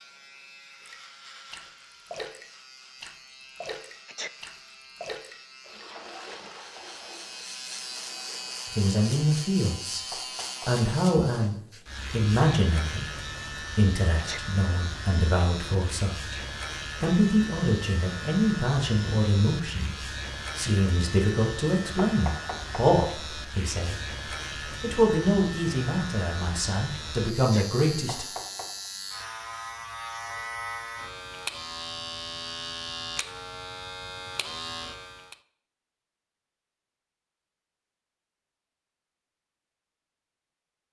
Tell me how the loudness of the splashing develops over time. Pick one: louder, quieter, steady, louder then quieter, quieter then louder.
quieter.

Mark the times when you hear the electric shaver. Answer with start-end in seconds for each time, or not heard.
0.0-35.4.